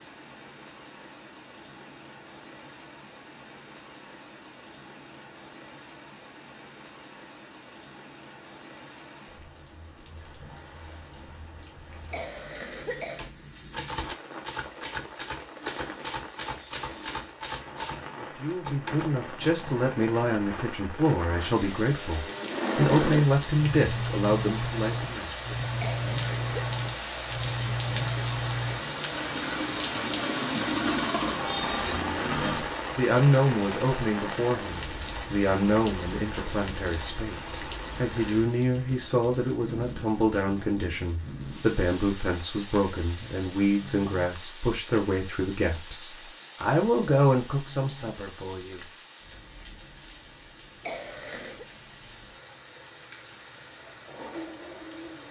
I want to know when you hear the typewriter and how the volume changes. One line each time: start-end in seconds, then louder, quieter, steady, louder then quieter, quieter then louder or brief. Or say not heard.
13.2-19.6 steady.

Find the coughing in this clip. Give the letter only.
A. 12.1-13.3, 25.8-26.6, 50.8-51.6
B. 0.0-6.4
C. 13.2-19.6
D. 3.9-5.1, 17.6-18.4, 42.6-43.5
A.